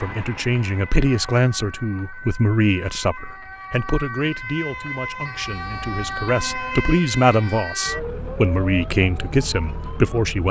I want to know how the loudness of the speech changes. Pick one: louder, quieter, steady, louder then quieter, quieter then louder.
quieter then louder.